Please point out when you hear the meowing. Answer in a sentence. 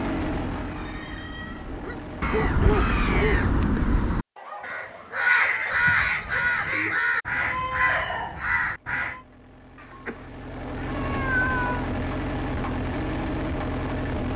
The meowing can be heard from 0.8 to 1.8 s, from 5.7 to 6.8 s and from 9.8 to 11.8 s.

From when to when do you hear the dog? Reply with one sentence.
You can hear the dog from 1.6 to 6.7 s.